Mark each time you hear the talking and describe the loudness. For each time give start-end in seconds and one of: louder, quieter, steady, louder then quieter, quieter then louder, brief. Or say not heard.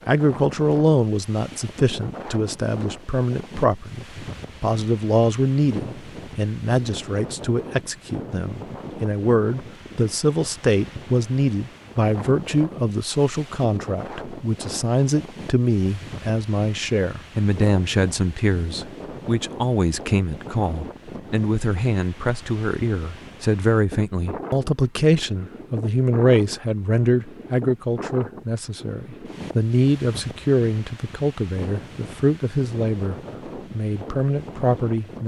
0.1-35.2 steady.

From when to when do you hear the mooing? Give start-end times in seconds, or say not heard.
not heard.